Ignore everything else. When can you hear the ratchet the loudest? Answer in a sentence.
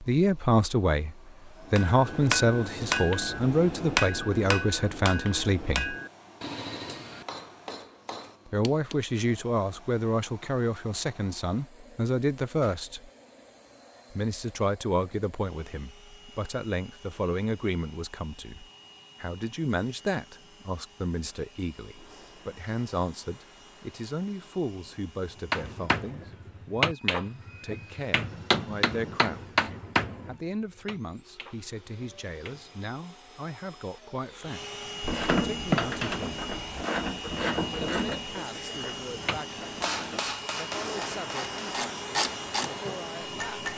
The loudest moment of the ratchet is at 36 seconds.